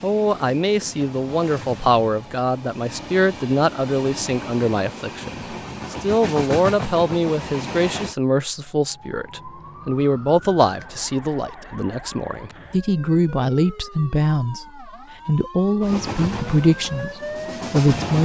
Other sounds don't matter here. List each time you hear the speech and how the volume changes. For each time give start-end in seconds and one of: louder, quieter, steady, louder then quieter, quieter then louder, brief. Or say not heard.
0.0-18.1 steady.